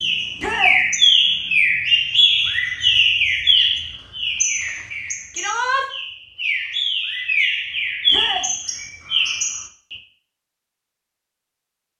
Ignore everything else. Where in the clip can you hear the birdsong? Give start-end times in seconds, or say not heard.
0.0-9.9.